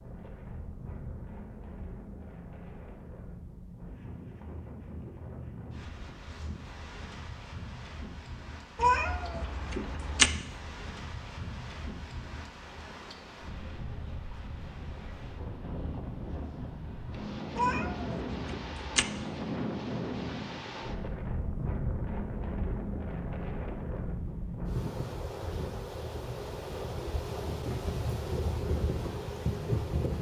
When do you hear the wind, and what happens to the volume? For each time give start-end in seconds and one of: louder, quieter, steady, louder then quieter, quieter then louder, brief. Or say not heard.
0.0-30.1 louder.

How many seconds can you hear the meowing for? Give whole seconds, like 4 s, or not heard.
3 s.